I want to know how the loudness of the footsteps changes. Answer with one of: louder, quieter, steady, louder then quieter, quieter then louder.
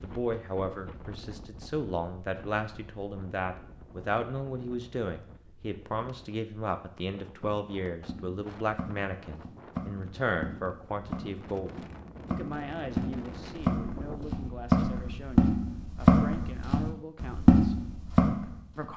louder.